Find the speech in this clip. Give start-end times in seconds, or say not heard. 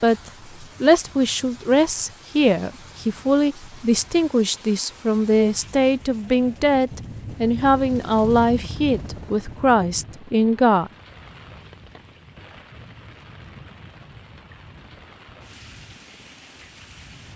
0.0-10.9.